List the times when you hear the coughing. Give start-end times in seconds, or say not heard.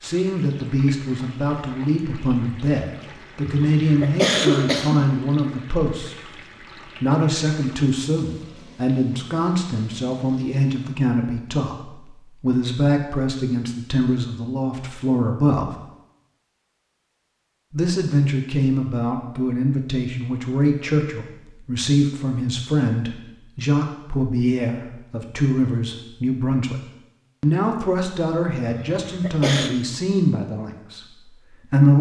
3.5-5.0, 28.6-29.8.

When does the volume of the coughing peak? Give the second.
4 s.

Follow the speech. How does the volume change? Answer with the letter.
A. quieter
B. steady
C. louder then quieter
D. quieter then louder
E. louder
B.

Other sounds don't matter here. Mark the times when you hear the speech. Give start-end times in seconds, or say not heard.
0.0-15.7, 17.7-26.8, 27.4-31.9.